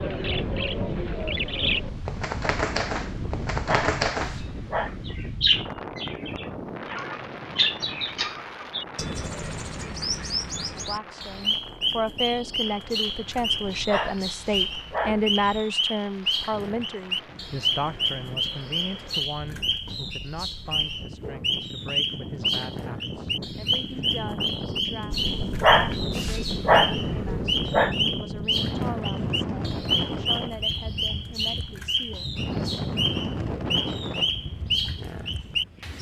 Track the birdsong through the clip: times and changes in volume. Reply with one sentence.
The birdsong can be heard from 0.0 to 35.9 s, at a steady volume.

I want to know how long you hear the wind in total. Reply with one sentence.
You can hear the wind for 36 seconds altogether.